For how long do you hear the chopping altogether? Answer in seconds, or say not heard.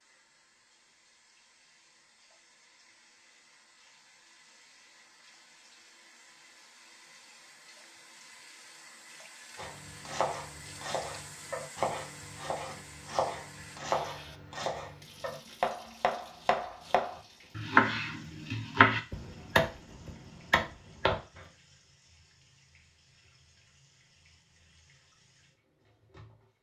12 s.